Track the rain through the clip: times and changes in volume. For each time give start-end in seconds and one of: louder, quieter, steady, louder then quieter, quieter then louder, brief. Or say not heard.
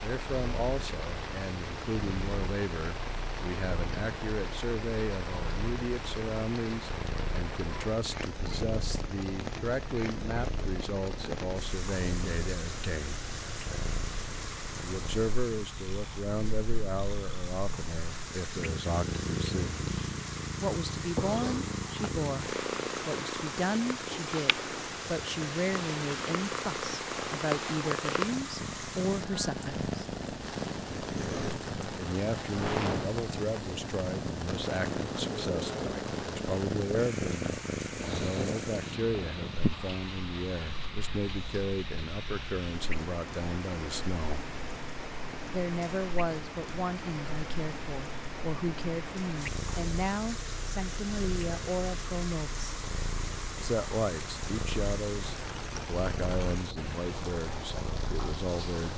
0.0-58.9 steady.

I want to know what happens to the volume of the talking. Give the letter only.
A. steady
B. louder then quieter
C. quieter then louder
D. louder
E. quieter
A.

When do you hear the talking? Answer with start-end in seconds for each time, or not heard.
0.0-13.2, 14.8-19.9, 20.6-29.9, 31.9-44.5, 45.5-52.7, 53.6-58.9.